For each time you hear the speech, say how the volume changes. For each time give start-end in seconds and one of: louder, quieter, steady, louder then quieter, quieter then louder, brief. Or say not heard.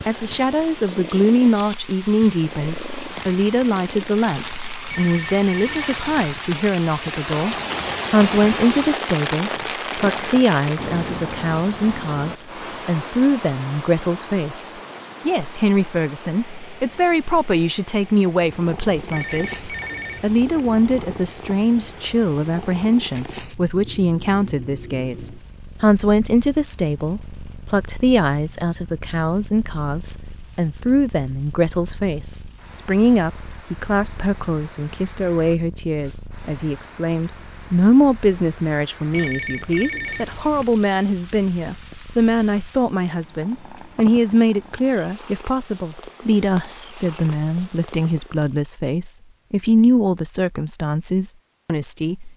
0.1-52.3 steady.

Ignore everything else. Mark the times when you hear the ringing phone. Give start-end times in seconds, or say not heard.
4.8-6.2, 19.1-20.4, 39.1-40.6.